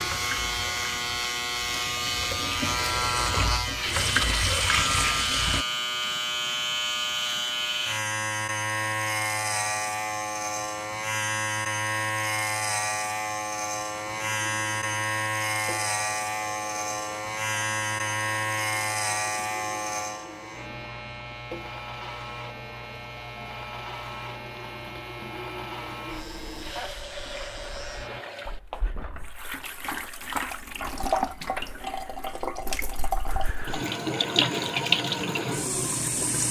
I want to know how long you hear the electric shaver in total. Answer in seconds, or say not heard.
28 s.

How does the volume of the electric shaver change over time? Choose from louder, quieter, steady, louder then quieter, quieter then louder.
quieter.